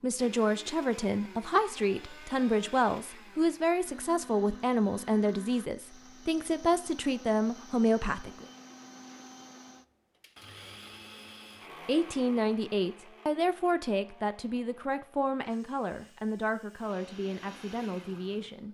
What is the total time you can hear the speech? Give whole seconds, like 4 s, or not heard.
15 s.